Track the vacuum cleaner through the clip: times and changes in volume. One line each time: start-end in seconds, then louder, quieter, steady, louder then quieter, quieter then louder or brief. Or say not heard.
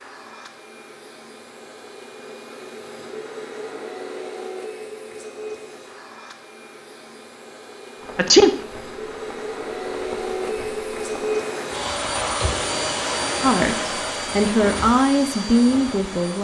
0.0-16.3 louder.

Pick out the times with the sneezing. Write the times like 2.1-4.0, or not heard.
8.2-8.6.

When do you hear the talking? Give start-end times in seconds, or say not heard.
13.4-16.3.